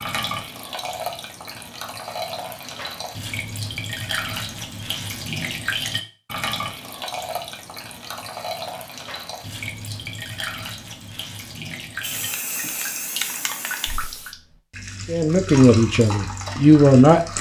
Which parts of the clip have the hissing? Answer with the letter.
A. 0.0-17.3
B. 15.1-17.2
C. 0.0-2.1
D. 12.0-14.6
D.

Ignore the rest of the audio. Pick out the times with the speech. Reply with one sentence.
The speech can be heard from 15.1 to 17.2 s.